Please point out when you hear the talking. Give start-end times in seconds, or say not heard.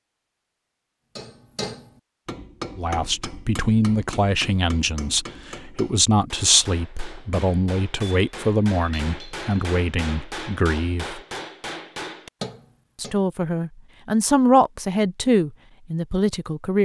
2.8-11.2, 12.9-16.8.